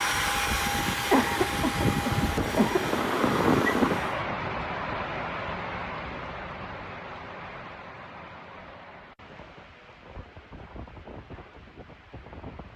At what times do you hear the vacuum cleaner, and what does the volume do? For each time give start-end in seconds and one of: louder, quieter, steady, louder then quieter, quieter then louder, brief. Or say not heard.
0.0-4.2 quieter.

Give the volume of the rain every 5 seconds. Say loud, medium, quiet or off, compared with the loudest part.
loud, medium, quiet.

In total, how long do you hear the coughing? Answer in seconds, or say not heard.
2 s.